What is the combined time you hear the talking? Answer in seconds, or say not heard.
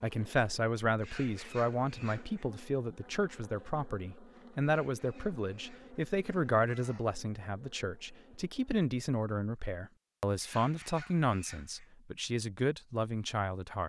14 s.